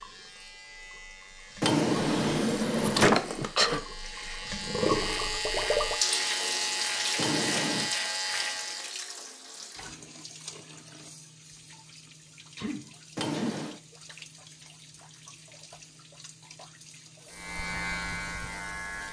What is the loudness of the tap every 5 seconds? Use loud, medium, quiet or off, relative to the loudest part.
loud, loud, quiet, quiet.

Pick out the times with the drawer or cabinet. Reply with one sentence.
The drawer or cabinet can be heard from 1.6 to 3.5 s, from 7.2 to 7.9 s and from 13.2 to 13.8 s.